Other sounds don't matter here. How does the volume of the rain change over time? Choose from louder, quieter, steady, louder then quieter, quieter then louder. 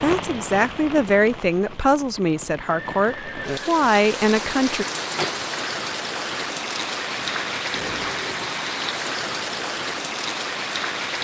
louder.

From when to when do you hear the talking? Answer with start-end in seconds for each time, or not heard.
0.0-4.8.